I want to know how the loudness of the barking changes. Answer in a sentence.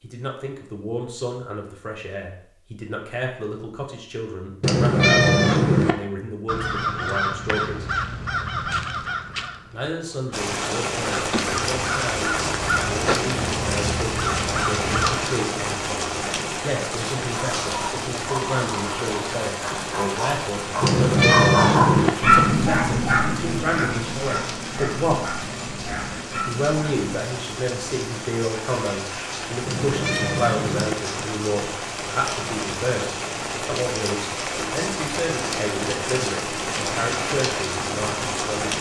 The volume of the barking goes up, then down.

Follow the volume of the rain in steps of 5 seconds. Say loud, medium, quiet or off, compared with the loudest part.
off, off, loud, loud, medium, medium, loud, loud.